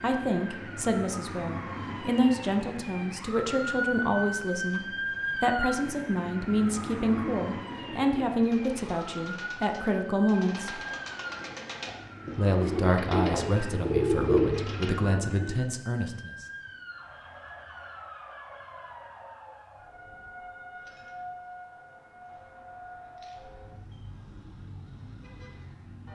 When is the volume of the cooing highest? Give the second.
14 s.